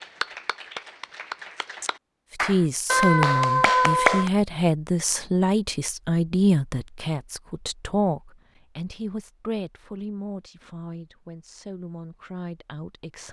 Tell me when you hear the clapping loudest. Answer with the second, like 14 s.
4 s.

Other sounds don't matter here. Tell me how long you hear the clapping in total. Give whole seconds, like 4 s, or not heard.
4 s.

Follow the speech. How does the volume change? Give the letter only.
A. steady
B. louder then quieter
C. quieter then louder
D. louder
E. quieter
E.